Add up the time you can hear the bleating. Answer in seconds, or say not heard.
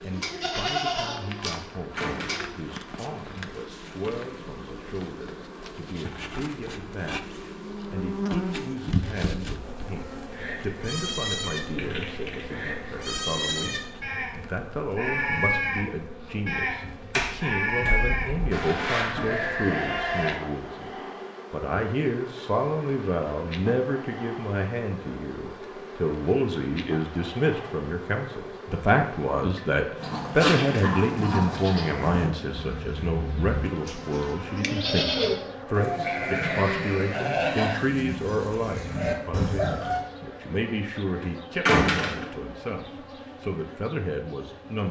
23 s.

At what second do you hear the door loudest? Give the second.
42 s.